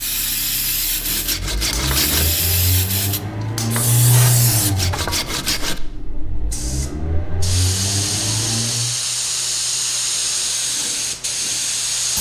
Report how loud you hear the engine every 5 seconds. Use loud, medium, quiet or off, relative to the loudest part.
loud, medium, off.